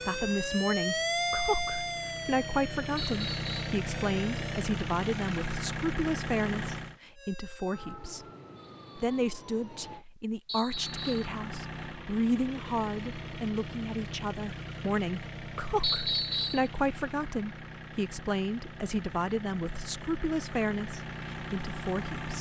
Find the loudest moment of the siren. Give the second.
1 s.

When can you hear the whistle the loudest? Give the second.
16 s.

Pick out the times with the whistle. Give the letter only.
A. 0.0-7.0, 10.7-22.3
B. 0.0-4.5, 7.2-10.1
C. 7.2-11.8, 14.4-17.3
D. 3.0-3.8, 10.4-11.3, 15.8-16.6
D.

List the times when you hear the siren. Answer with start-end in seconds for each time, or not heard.
0.0-4.5, 7.2-10.1.